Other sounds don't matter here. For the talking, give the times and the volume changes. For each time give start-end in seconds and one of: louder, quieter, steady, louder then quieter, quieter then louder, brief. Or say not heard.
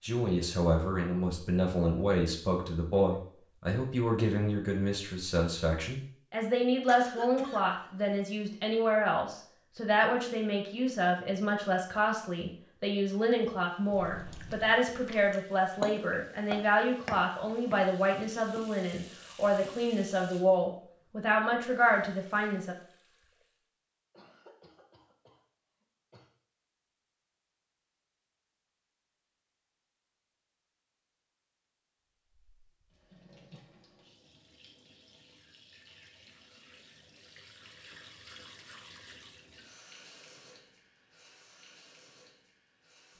0.0-22.8 steady.